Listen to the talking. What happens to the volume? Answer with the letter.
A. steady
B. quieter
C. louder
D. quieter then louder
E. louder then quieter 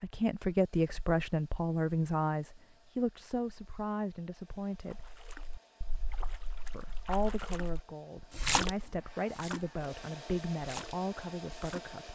B.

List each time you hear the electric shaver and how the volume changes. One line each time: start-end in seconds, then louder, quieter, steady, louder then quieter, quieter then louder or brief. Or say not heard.
not heard.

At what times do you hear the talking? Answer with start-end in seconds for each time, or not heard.
0.0-5.1, 6.7-12.1.